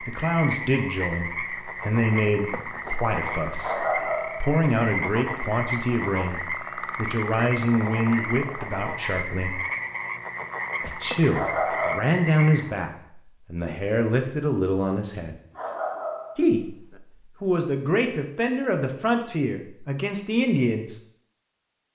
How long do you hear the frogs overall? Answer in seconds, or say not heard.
13 s.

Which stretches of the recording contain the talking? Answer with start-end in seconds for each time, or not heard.
0.0-9.6, 10.8-15.4, 16.4-21.0.